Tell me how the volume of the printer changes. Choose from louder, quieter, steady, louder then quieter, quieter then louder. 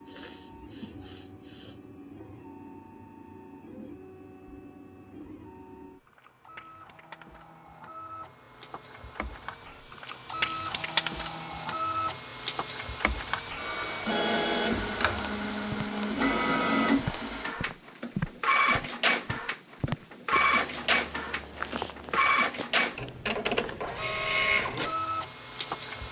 louder.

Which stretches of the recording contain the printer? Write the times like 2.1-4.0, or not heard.
0.0-26.0.